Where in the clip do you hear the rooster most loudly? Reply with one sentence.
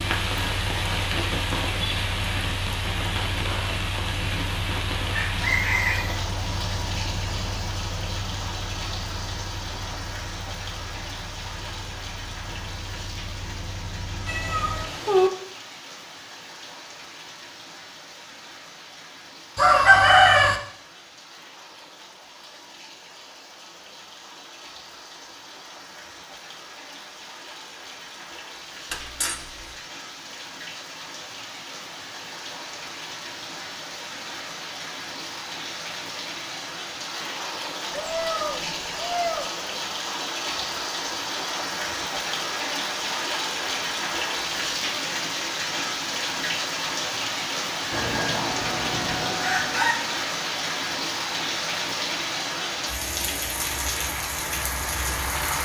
The volume of the rooster peaks at 20 seconds.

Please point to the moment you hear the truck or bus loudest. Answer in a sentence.
The volume of the truck or bus peaks at 55 seconds.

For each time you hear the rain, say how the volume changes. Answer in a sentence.
You can hear the rain from 0.0 to 55.6 s, getting quieter then louder.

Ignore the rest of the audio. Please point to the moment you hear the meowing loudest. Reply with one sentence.
The volume of the meowing peaks at 15 seconds.